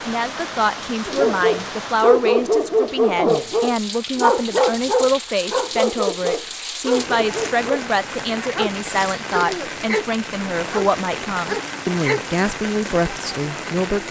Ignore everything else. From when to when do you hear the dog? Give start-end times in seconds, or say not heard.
1.1-12.8.